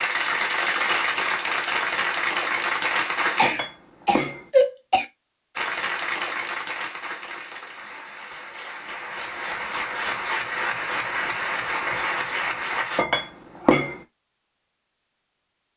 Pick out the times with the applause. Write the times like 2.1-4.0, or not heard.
0.0-3.5, 5.5-13.1.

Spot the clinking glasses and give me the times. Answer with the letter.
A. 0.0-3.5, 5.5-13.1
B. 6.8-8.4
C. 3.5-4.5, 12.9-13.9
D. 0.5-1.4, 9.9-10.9
C.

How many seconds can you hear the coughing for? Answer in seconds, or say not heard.
2 s.